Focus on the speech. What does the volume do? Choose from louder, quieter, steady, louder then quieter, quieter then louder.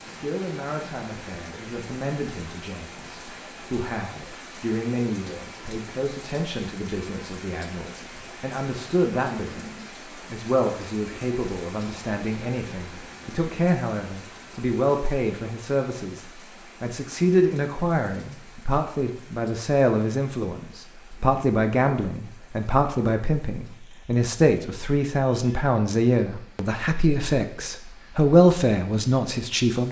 louder.